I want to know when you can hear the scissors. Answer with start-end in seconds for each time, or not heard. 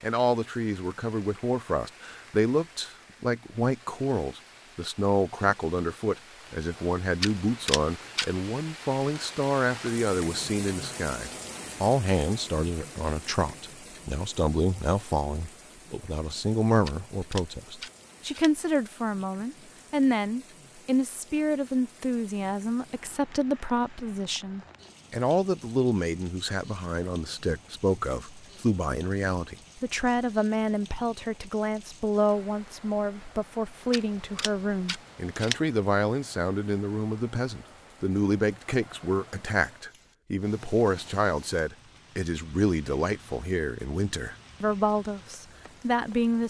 7.2-8.2, 16.9-18.5, 33.9-35.5.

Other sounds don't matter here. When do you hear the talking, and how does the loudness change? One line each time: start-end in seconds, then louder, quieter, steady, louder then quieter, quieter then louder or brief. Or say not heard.
0.0-46.4 steady.